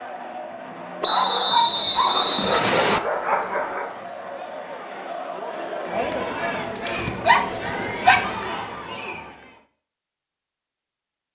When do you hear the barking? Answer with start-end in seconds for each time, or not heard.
1.1-4.0, 6.9-8.3.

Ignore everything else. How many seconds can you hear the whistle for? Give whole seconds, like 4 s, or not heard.
2 s.